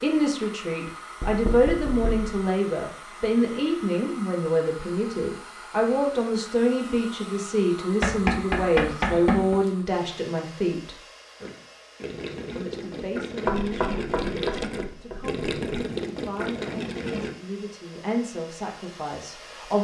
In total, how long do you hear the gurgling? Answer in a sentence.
The gurgling can be heard for 6 seconds in total.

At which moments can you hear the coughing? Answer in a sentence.
You can't hear the coughing here.